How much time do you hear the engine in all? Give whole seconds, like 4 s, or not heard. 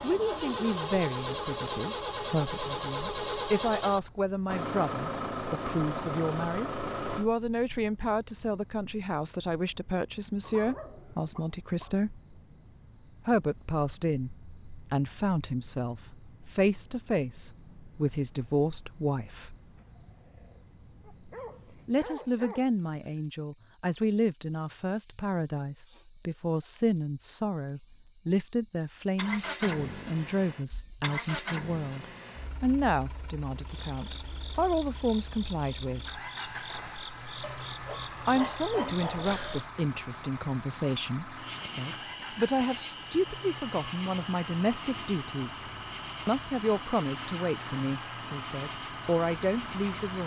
28 s.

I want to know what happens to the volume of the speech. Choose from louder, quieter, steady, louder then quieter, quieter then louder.
steady.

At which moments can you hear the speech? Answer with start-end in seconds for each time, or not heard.
0.0-12.2, 13.2-19.6, 21.9-36.2, 38.2-45.6, 46.2-50.2.